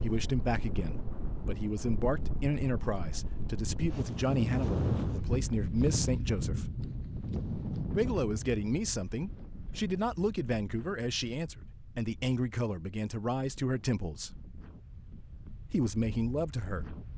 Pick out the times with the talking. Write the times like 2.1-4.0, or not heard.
0.0-6.8, 7.9-14.4, 15.5-16.9.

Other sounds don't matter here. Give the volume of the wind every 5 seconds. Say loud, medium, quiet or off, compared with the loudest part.
loud, loud, quiet, quiet.